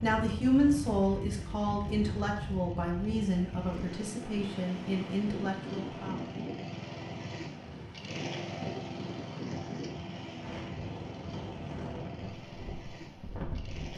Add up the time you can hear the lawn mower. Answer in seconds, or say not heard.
14 s.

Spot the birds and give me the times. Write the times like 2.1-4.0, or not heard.
not heard.